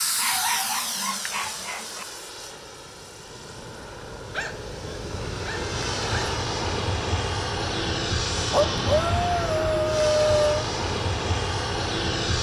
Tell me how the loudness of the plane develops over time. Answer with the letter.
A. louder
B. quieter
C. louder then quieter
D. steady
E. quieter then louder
E.